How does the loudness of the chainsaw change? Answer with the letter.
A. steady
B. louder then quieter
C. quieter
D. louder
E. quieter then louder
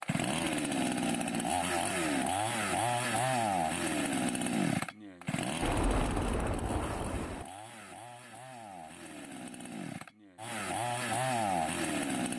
E.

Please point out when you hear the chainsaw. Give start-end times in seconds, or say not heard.
0.0-12.3.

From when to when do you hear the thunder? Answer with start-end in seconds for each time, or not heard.
5.6-7.5.